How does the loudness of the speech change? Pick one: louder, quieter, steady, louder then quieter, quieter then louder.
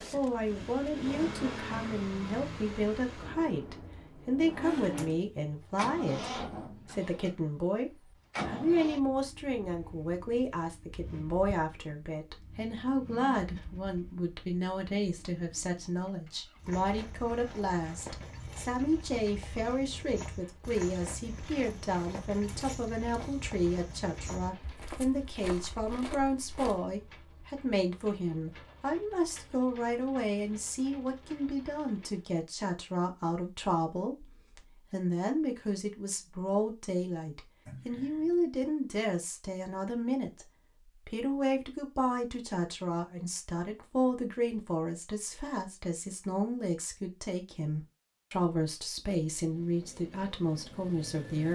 steady.